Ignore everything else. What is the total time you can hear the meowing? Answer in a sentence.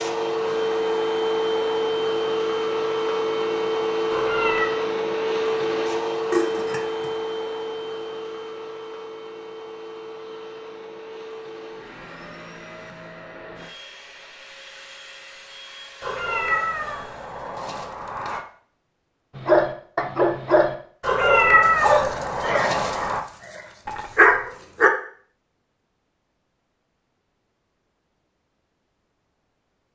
The meowing can be heard for 5 seconds in total.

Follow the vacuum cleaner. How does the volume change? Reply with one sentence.
The loudness of the vacuum cleaner goes down.